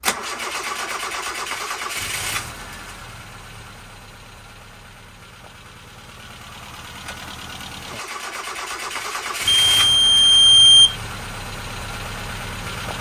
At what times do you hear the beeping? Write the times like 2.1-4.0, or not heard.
9.4-10.9.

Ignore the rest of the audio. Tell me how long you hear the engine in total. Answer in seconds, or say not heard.
13 s.